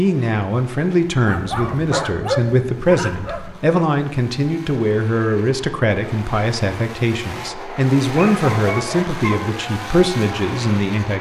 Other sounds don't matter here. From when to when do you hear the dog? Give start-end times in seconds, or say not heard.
1.2-3.8, 8.1-9.6.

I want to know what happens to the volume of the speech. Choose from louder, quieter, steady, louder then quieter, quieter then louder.
steady.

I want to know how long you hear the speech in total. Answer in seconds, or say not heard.
11 s.